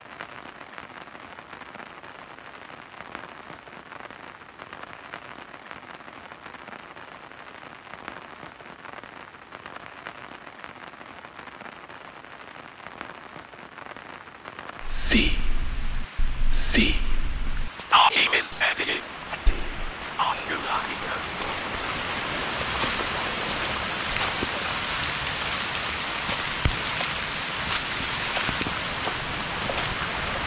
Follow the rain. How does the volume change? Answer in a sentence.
The volume of the rain goes up.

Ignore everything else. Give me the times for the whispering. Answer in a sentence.
You can hear the whispering from 14.8 to 24.8 s.